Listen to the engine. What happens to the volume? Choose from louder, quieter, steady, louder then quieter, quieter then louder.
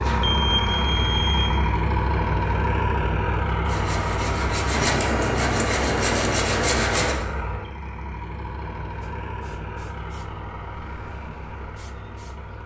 quieter.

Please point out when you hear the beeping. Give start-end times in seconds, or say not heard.
0.2-1.6.